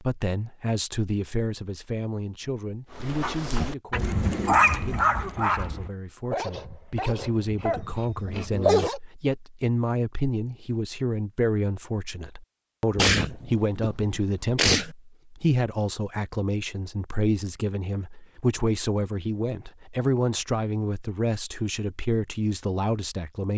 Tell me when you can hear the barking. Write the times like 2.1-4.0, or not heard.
3.0-9.0.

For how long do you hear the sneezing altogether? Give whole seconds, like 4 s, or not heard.
2 s.